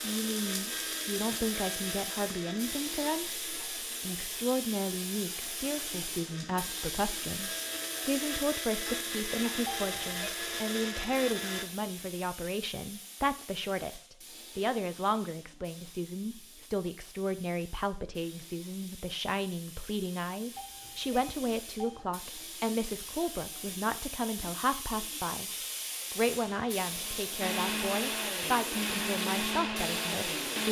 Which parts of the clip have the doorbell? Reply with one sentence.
You can hear the doorbell from 9.7 to 10.3 s and from 20.6 to 22.0 s.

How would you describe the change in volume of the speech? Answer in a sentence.
The loudness of the speech stays about the same.